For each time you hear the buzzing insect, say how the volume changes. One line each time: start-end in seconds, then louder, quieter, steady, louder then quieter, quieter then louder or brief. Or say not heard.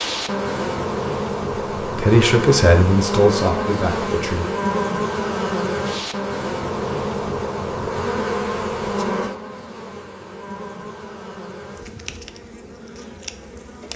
0.0-13.9 quieter.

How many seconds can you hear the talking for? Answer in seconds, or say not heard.
3 s.